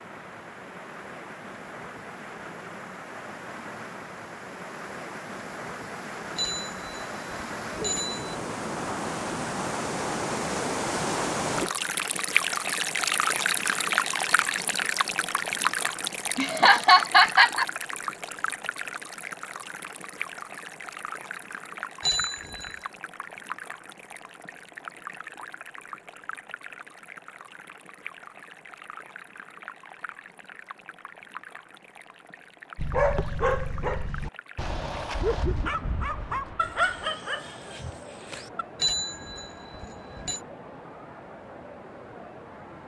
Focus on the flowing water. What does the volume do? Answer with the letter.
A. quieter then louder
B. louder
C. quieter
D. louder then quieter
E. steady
D.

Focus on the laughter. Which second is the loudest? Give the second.
17 s.